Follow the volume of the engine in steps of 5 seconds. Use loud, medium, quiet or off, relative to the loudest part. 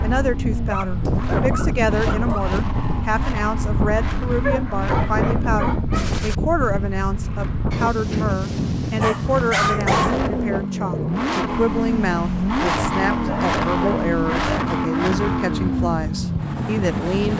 medium, medium, loud, loud.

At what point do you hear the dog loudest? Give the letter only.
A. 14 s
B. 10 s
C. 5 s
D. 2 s
B.